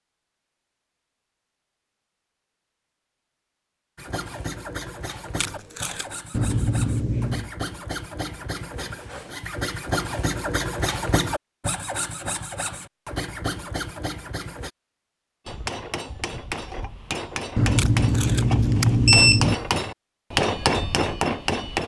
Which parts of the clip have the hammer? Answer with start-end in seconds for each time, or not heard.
15.4-21.8.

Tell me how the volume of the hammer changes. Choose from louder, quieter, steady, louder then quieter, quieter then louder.
louder.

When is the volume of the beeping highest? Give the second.
19 s.